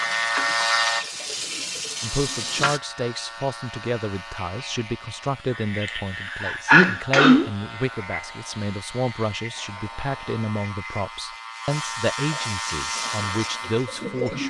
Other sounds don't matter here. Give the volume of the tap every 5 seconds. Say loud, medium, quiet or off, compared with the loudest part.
loud, off, loud.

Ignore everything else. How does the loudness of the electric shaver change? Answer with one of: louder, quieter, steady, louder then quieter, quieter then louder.
quieter then louder.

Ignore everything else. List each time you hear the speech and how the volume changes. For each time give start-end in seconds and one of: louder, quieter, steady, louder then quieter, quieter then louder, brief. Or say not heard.
2.0-14.4 steady.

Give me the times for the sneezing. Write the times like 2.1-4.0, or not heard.
5.8-7.5.